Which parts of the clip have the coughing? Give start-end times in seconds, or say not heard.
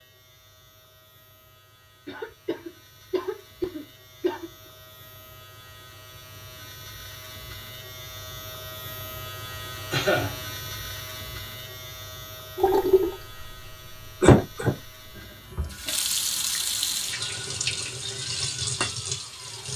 2.0-4.5, 9.9-10.3, 14.2-14.8.